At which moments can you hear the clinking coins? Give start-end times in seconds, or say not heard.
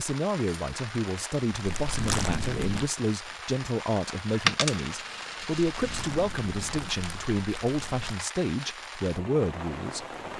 4.5-6.1.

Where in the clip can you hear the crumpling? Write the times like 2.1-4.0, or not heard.
1.6-2.9, 5.7-8.2.